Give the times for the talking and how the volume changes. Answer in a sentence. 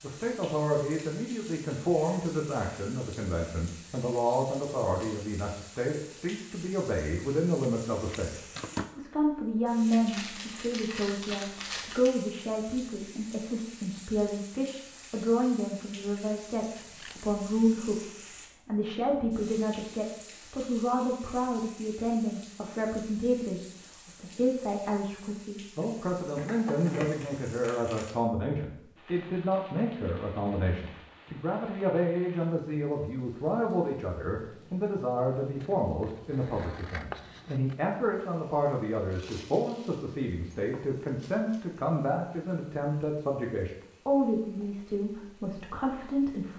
You can hear the talking from 0.0 to 46.5 s, at a steady volume.